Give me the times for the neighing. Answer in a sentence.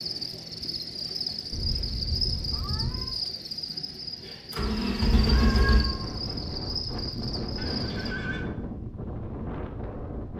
You can hear the neighing from 7.5 to 8.4 s.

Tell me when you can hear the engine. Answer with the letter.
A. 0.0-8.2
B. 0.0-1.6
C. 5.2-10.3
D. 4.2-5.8
D.